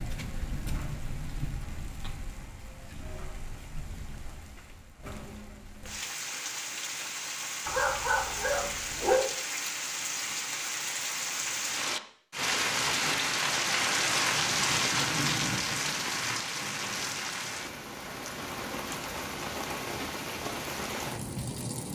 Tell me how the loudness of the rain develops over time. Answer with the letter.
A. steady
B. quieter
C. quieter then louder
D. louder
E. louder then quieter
E.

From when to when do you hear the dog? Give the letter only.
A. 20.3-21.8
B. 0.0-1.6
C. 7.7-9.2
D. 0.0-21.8
C.